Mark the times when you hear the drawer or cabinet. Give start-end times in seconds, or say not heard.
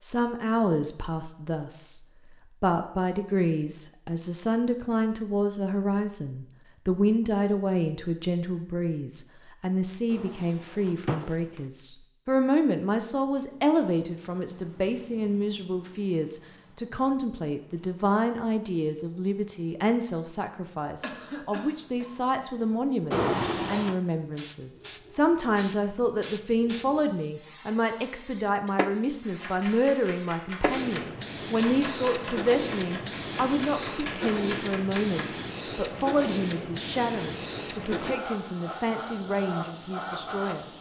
10.1-11.6, 23.1-24.0.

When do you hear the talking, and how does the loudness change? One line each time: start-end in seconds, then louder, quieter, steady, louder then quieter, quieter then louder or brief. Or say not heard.
0.0-2.0 brief
2.6-40.7 steady.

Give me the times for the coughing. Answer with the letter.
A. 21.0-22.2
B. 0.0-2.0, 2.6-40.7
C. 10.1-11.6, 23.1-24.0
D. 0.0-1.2
A.